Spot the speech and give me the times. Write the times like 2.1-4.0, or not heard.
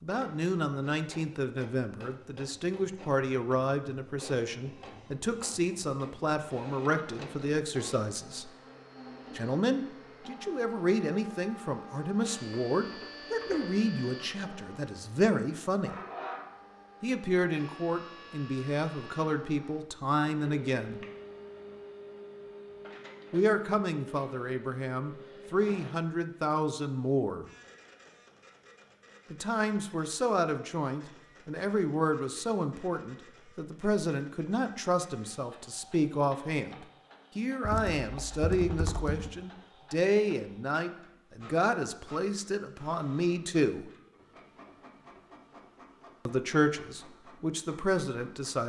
0.0-8.5, 9.3-15.9, 17.0-21.0, 23.3-27.4, 29.3-43.9, 46.2-48.6.